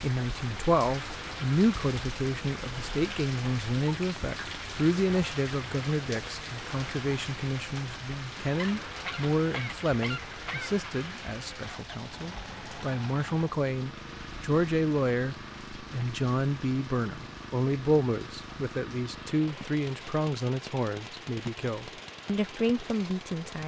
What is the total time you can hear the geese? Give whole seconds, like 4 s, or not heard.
2 s.